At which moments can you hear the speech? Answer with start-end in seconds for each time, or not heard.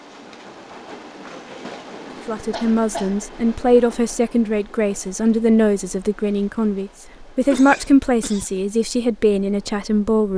2.2-10.3.